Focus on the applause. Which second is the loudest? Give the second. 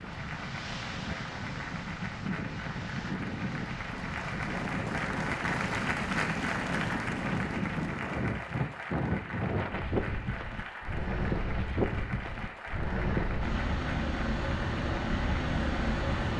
6 s.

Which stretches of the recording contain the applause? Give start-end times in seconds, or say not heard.
0.0-16.3.